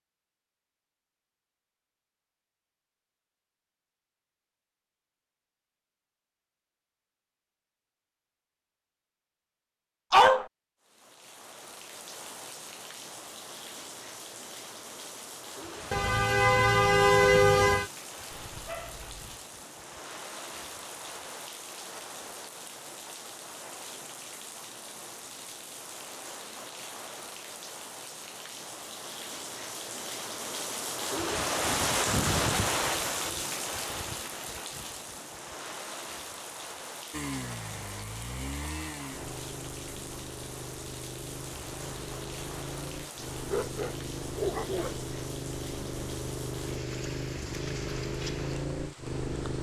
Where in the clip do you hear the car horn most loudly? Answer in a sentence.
The loudest moment of the car horn is at 17 seconds.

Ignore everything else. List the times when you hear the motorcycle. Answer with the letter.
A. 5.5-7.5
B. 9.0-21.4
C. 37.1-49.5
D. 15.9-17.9
C.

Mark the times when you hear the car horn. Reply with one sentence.
The car horn can be heard from 15.9 to 17.9 s.